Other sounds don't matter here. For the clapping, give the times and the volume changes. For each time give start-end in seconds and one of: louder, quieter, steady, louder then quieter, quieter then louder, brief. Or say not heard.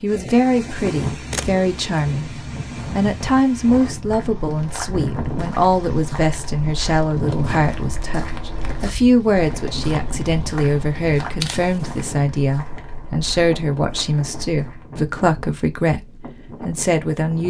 not heard.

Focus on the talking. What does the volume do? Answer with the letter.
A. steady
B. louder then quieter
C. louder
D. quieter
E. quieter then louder
A.